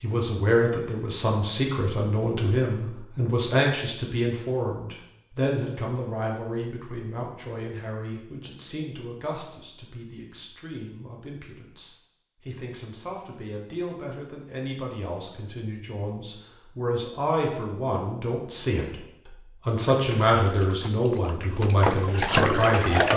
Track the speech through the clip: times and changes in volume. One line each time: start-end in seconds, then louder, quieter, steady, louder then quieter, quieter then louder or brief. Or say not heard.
0.0-23.1 quieter then louder.